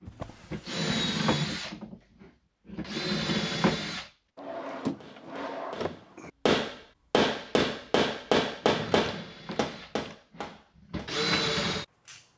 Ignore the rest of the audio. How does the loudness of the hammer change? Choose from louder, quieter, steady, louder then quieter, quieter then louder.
louder then quieter.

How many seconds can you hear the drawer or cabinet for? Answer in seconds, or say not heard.
4 s.